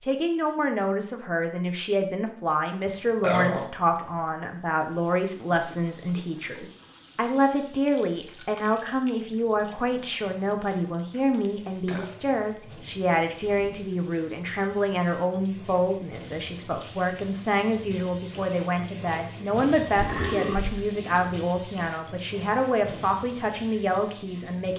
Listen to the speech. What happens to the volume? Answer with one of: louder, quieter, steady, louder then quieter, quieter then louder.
steady.